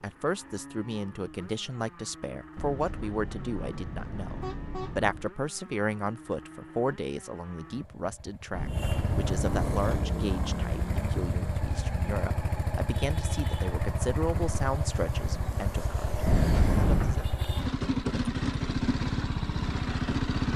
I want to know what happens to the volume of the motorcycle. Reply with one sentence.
The loudness of the motorcycle goes up.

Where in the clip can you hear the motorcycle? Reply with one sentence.
You can hear the motorcycle from 0.0 to 20.5 s.